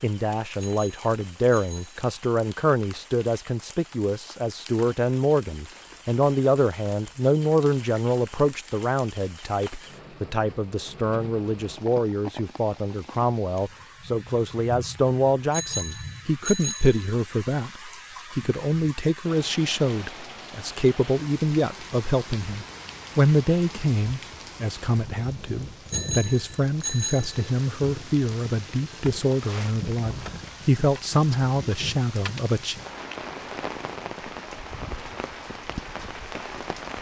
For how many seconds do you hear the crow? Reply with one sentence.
You can't hear the crow here.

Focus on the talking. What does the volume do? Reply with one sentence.
The loudness of the talking stays about the same.